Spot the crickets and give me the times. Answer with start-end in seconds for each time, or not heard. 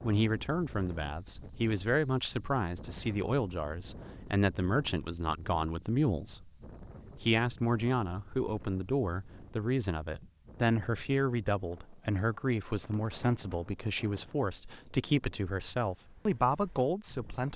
0.0-9.6.